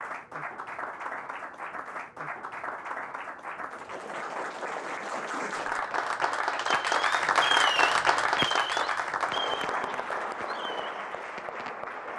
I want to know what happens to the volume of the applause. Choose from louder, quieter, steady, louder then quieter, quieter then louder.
louder then quieter.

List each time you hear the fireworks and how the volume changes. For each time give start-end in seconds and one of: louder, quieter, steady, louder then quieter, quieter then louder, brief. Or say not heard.
5.5-11.8 louder then quieter.